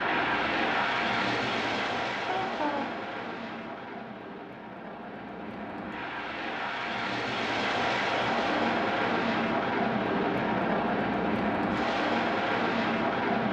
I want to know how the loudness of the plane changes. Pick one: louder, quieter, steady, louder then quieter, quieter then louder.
quieter then louder.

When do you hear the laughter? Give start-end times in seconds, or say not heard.
2.2-2.9.